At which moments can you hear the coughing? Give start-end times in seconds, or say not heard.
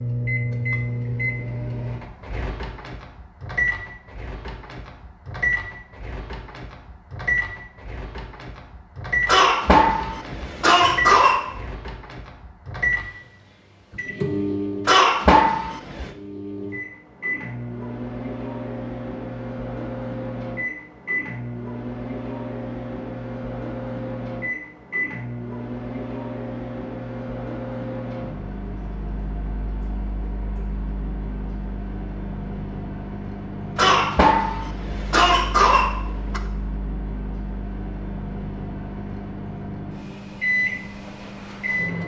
9.2-11.5, 14.8-16.1, 33.8-36.4.